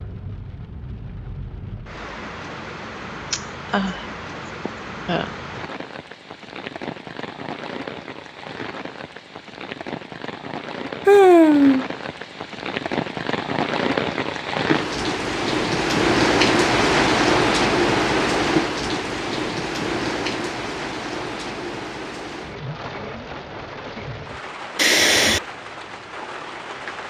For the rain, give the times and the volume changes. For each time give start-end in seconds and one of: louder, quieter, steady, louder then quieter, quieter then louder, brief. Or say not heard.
0.0-27.0 louder then quieter.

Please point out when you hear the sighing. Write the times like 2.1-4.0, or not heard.
3.3-4.0, 4.7-5.3, 11.1-11.8, 24.8-25.4.